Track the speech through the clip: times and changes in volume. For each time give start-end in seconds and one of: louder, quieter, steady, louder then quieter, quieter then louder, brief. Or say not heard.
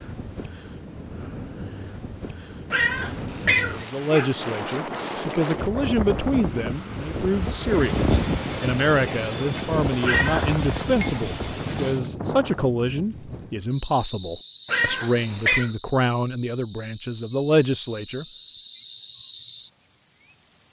3.8-18.2 steady.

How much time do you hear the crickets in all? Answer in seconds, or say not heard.
13 s.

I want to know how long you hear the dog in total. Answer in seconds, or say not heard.
not heard.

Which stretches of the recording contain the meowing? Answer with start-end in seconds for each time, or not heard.
2.7-4.3, 10.0-10.5, 14.7-15.7.